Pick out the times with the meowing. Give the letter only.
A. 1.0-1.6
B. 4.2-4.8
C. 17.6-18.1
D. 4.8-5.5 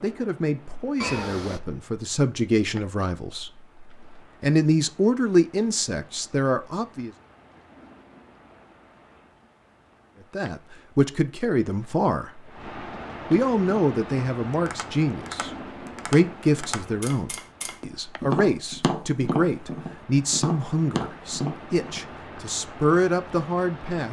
A.